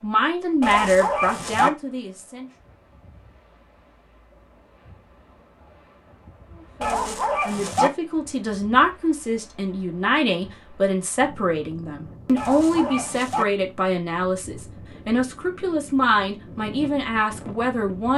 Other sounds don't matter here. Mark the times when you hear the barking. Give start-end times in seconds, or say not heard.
0.6-1.7, 6.8-7.9, 12.3-13.4.